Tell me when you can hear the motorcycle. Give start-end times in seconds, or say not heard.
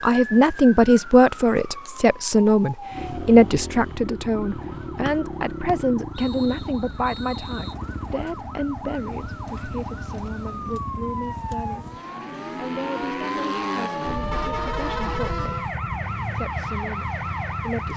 2.9-17.9.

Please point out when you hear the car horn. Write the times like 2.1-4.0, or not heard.
14.0-15.6.